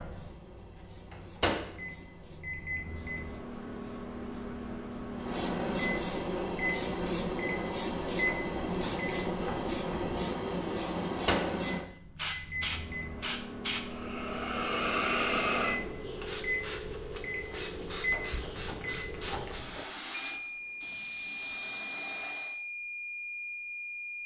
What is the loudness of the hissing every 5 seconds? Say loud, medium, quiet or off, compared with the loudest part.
quiet, loud, loud, loud, loud.